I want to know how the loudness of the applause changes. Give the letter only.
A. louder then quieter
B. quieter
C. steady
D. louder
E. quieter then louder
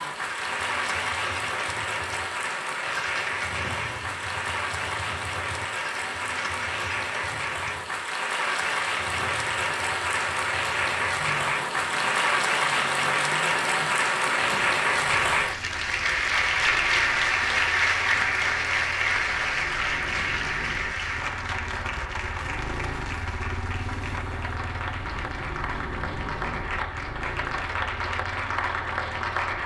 A.